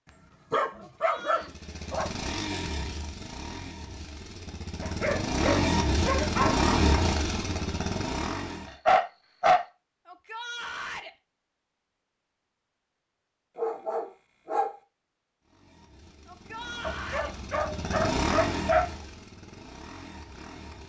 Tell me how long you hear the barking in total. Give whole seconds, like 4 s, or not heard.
8 s.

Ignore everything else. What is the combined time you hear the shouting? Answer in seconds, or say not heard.
3 s.